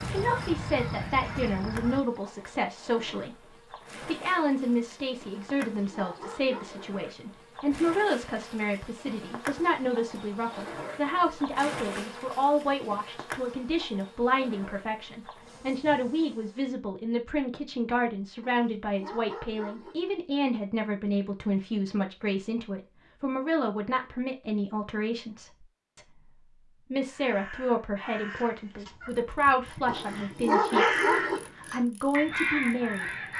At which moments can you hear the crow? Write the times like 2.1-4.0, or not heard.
0.0-2.2, 27.1-33.3.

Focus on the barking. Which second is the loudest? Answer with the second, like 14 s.
31 s.